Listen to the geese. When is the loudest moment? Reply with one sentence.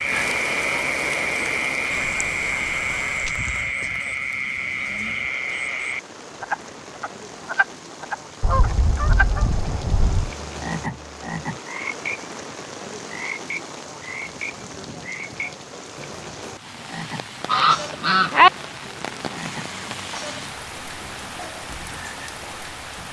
The loudest moment of the geese is at 18 seconds.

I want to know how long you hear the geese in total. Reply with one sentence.
The geese can be heard for 5 seconds in total.